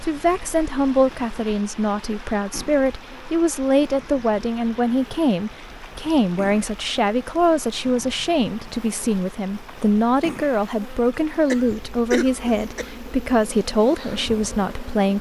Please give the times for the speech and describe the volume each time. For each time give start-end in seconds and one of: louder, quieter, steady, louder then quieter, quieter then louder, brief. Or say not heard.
0.0-15.1 steady.